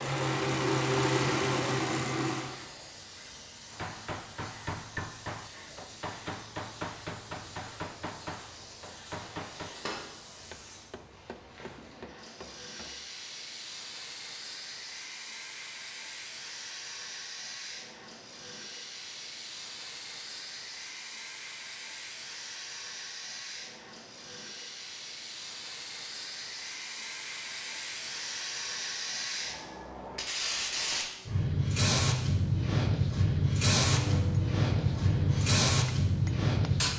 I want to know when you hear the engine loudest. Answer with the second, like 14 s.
1 s.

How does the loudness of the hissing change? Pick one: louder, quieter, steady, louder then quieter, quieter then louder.
louder.